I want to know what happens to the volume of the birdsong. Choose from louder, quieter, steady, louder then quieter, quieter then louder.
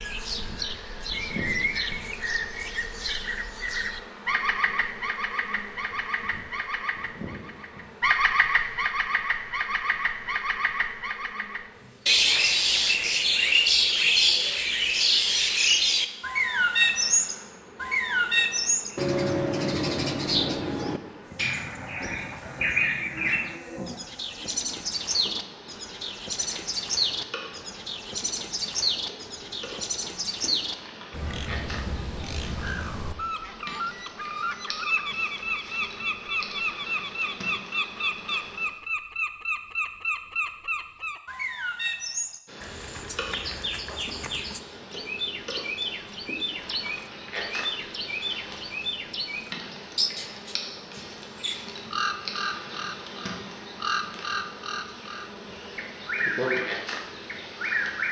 louder then quieter.